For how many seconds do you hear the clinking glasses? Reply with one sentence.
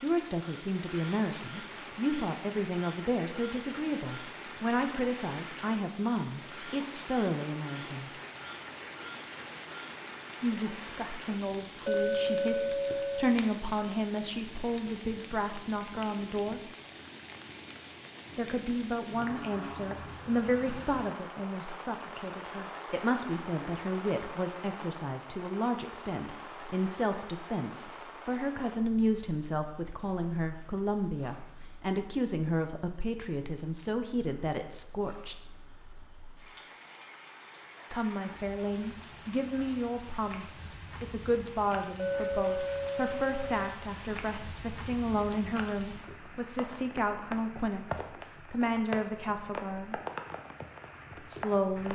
The clinking glasses can be heard for 3 seconds in total.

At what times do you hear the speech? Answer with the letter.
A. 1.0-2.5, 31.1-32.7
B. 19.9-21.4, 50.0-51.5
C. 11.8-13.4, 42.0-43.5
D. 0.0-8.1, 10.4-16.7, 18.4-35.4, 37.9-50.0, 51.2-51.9
D.